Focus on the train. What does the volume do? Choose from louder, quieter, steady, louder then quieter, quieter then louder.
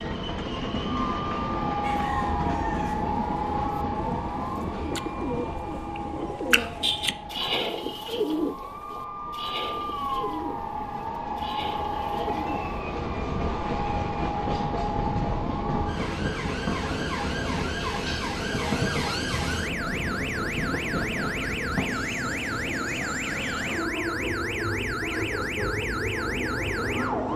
quieter then louder.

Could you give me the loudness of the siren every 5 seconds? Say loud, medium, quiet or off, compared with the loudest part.
loud, medium, loud, loud, loud, loud.